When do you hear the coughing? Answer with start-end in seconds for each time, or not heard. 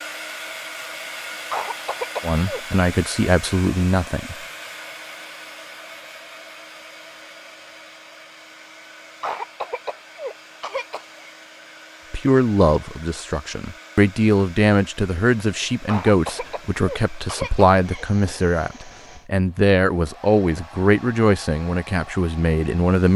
1.5-2.6, 9.2-11.3, 15.8-18.1.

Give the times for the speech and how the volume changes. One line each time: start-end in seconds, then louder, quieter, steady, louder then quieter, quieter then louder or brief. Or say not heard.
2.2-4.3 brief
12.1-23.1 steady.